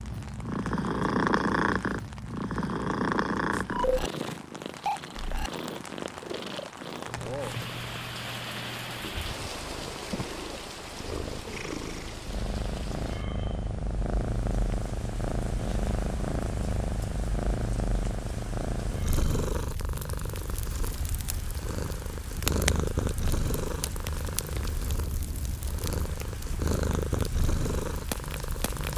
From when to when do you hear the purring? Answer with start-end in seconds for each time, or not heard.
0.0-28.9.